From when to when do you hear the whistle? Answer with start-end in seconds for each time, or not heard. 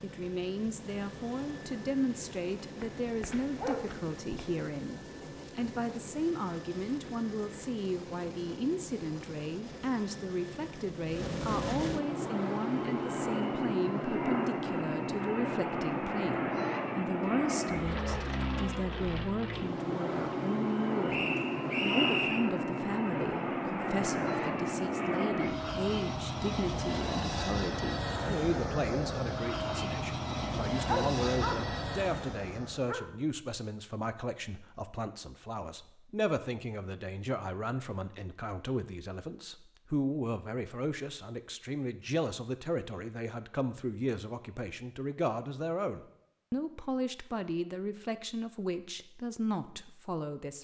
21.1-22.5.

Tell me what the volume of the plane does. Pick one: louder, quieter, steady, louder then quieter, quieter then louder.
louder.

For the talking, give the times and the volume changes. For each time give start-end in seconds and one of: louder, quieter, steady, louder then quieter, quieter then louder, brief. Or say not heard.
0.0-50.5 steady.